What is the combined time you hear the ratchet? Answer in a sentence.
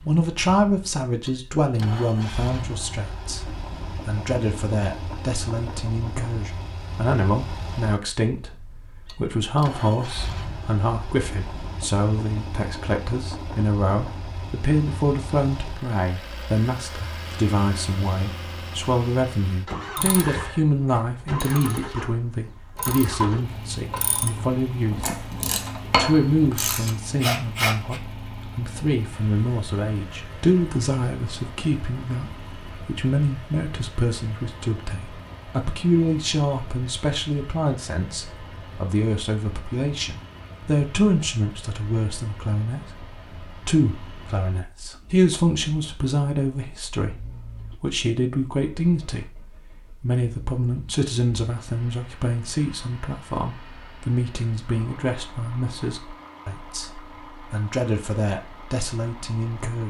You can hear the ratchet for 8 seconds altogether.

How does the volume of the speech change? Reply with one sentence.
The volume of the speech stays about the same.